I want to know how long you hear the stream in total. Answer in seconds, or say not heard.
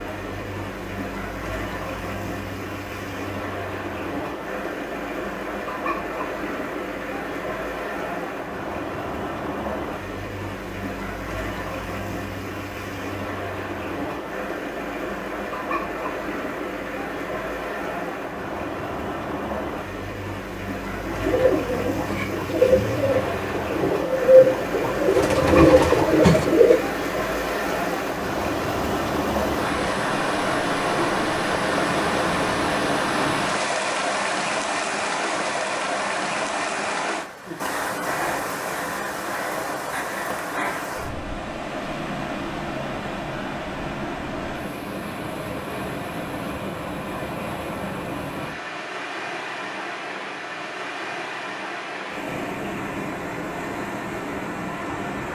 55 s.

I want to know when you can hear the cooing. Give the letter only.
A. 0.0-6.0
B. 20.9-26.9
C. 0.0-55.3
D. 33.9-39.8
B.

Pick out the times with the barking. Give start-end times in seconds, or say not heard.
not heard.